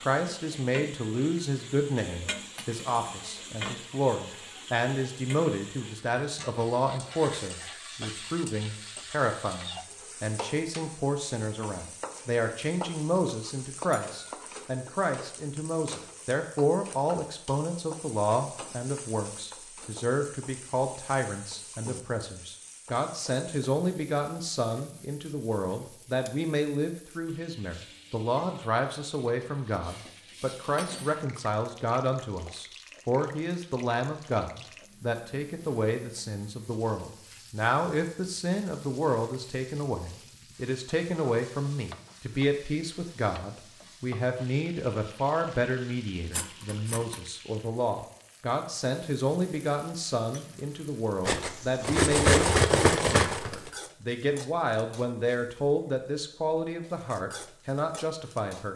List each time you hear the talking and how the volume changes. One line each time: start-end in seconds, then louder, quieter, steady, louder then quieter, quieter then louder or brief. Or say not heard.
0.0-58.7 steady.